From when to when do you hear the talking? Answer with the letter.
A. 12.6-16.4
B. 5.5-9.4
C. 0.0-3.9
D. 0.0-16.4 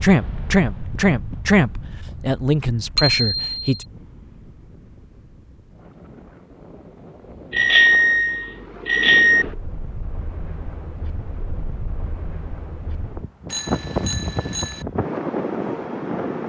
C.